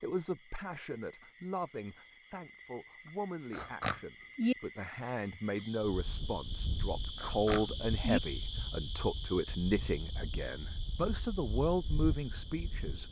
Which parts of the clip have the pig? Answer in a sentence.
The pig can be heard from 3.5 to 4.5 s and from 7.2 to 8.2 s.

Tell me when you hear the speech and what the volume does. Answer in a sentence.
You can hear the speech from 0.0 to 13.0 s, getting louder.